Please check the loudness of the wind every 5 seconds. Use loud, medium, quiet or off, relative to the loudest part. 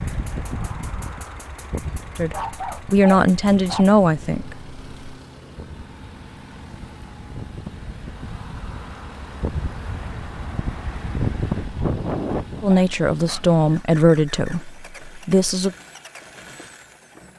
medium, medium, loud, off.